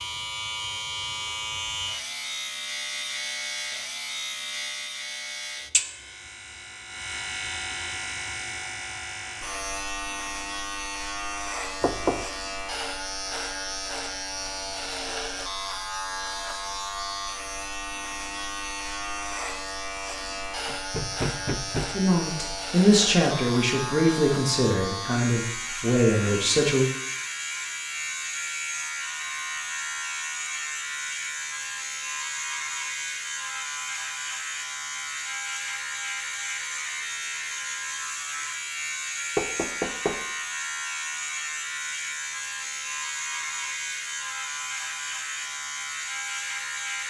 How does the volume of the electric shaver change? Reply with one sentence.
The loudness of the electric shaver stays about the same.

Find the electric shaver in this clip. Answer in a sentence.
You can hear the electric shaver from 0.0 to 47.0 s.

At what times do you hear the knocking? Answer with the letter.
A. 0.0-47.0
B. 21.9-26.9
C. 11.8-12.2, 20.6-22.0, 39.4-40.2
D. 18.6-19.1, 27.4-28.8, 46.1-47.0
C.